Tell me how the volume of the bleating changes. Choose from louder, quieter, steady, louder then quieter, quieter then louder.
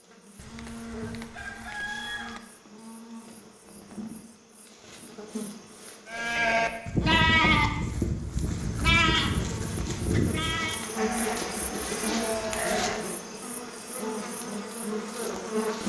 quieter.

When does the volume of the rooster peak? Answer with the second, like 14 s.
2 s.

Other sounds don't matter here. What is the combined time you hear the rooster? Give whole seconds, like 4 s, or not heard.
2 s.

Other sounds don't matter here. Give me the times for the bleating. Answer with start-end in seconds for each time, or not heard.
6.0-13.1.